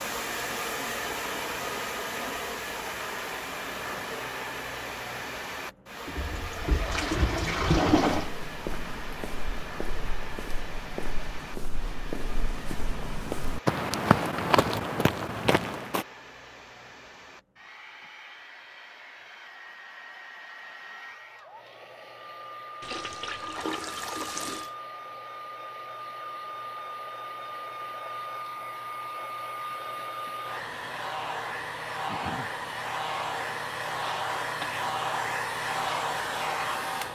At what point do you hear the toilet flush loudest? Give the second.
8 s.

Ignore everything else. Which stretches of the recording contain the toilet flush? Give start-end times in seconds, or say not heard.
6.0-8.3, 22.8-24.7.